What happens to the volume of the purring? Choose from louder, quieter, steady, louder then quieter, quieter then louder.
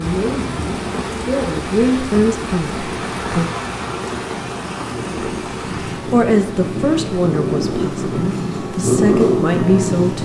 louder.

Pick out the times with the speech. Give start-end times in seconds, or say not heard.
0.0-3.5, 6.0-10.1.